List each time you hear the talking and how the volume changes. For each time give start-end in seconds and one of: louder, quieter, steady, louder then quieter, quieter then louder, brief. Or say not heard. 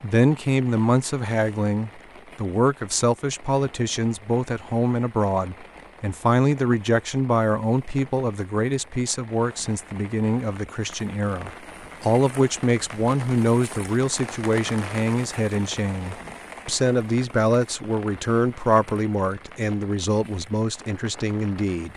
0.0-21.9 steady.